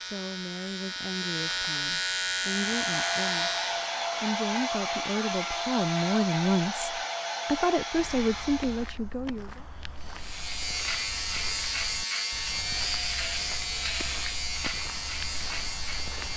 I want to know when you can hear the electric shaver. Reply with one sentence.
You can hear the electric shaver from 0.0 to 4.0 s and from 10.2 to 16.3 s.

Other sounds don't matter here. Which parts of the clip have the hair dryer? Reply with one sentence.
You can hear the hair dryer from 2.5 to 8.9 s.